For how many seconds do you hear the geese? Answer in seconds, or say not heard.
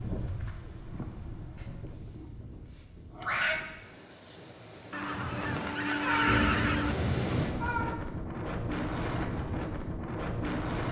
2 s.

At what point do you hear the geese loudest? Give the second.
6 s.